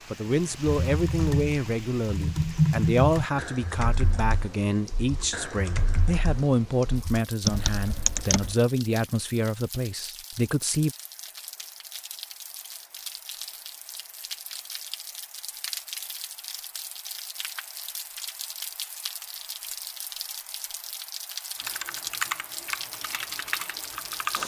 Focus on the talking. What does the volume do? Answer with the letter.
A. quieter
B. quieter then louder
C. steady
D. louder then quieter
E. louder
C.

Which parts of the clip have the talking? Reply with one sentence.
You can hear the talking from 0.1 to 10.9 s.